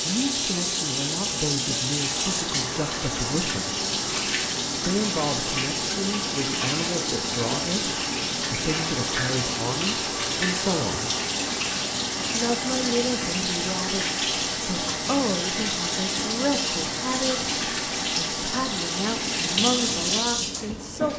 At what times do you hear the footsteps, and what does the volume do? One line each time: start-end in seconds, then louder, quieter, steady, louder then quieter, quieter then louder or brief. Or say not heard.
not heard.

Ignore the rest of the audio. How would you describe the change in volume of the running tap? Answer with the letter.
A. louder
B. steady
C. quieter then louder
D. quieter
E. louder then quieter
B.